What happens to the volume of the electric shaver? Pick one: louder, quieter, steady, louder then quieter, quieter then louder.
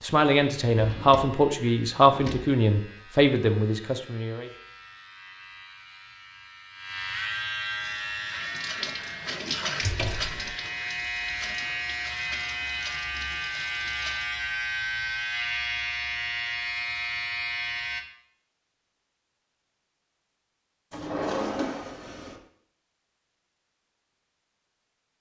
louder.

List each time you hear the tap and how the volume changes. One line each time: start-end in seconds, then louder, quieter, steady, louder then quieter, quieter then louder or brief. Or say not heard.
7.7-14.3 louder then quieter.